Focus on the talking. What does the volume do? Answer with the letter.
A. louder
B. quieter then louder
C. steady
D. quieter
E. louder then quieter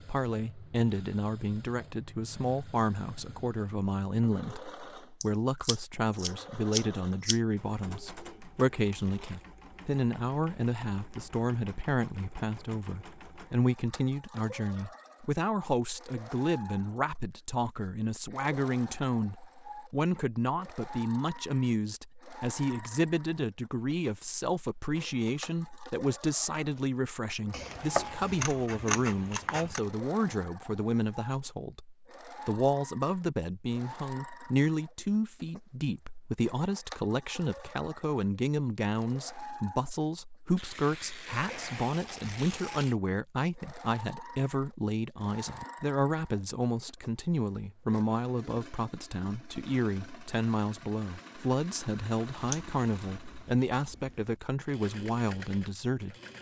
C.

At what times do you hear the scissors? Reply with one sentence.
The scissors can be heard from 5.2 to 7.4 s, from 27.5 to 29.8 s and from 52.4 to 54.4 s.